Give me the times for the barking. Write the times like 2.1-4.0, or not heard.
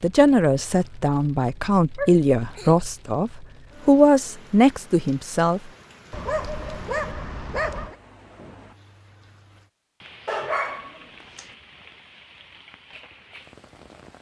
1.9-2.8, 6.1-8.0, 10.2-11.5.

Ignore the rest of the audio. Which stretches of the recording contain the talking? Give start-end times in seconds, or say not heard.
0.0-5.6.